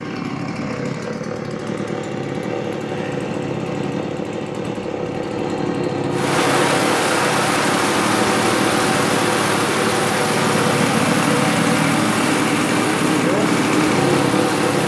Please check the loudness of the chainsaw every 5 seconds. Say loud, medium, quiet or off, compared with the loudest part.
medium, loud, loud.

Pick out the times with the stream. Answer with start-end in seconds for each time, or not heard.
6.1-14.8.